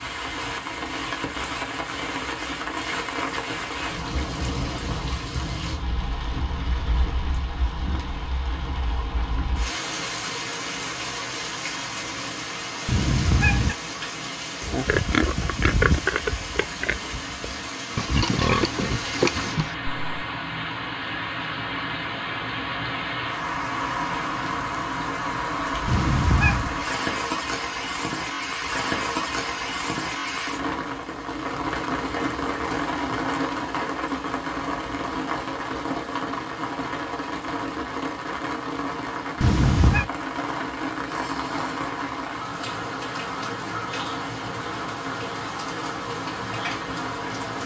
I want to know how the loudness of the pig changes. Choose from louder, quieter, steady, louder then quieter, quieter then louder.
quieter then louder.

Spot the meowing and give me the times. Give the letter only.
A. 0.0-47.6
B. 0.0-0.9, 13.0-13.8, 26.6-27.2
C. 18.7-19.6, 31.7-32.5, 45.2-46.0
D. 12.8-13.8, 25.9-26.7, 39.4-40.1
D.